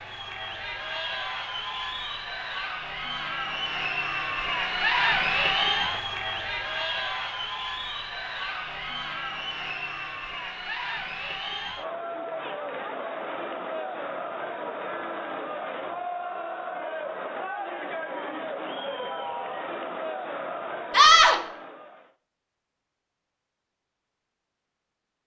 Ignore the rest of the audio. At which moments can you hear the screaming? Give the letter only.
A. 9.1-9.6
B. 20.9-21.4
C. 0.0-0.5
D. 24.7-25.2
B.